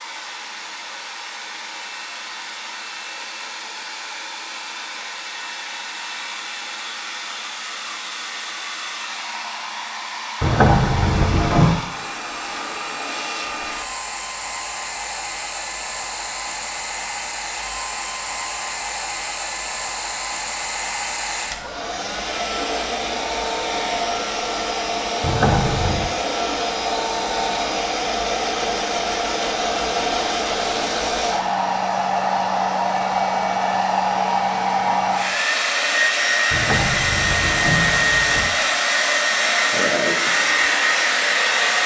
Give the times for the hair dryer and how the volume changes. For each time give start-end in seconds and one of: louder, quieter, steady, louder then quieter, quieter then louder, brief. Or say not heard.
0.0-41.8 louder.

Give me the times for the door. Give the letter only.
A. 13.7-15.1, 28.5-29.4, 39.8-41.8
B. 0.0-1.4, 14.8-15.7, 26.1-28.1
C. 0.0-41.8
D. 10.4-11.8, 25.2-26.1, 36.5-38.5
D.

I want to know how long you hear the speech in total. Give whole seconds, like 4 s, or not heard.
not heard.